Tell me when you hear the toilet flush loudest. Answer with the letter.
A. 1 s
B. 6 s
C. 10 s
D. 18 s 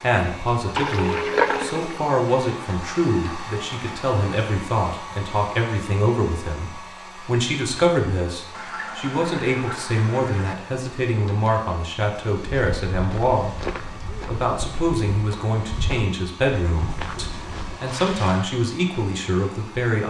A.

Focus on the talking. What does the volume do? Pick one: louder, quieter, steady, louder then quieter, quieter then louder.
steady.